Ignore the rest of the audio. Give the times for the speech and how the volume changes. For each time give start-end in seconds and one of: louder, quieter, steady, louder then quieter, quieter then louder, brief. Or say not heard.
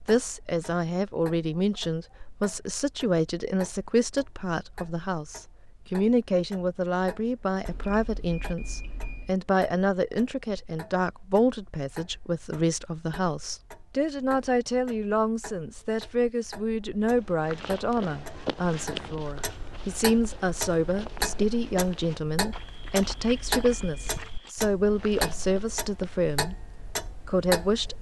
0.1-26.6 steady
27.2-27.9 brief.